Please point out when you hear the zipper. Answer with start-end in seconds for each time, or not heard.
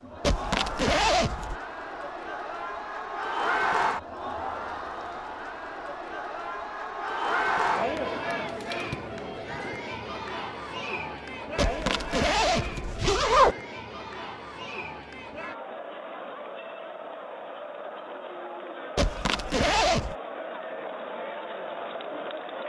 0.2-1.6, 11.6-13.6, 18.9-20.1.